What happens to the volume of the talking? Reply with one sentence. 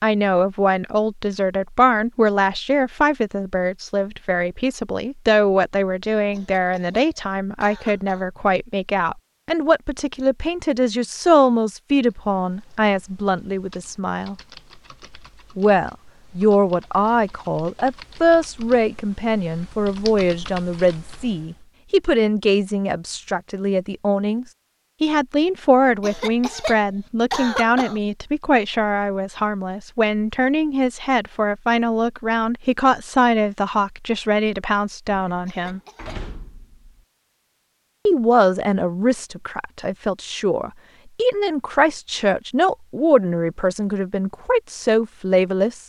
The volume of the talking stays about the same.